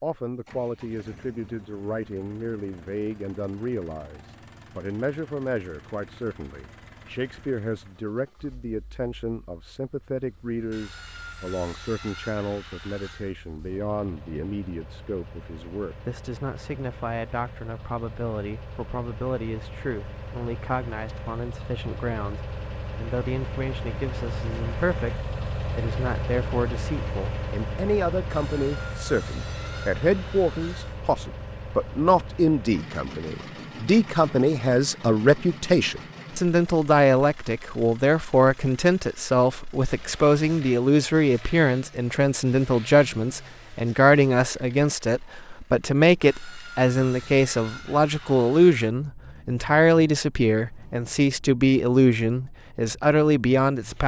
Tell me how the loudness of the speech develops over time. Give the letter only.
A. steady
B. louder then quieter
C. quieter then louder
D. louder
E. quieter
D.